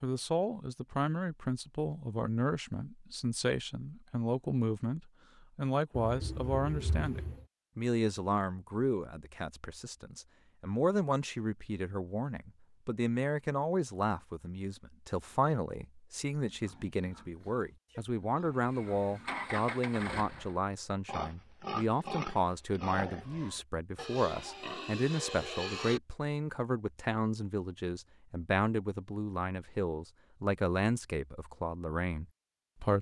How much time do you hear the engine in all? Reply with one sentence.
You can hear the engine for 2 seconds altogether.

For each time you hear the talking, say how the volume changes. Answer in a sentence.
The talking can be heard from 0.0 to 32.9 s, at a steady volume.